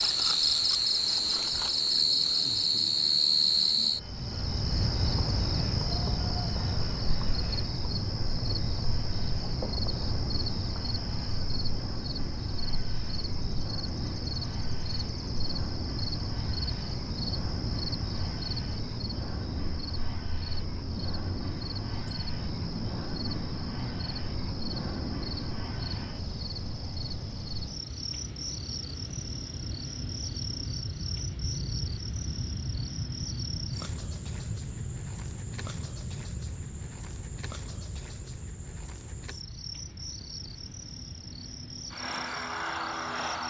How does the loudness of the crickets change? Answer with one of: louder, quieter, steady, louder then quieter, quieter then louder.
quieter.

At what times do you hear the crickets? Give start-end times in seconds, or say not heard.
0.0-43.4.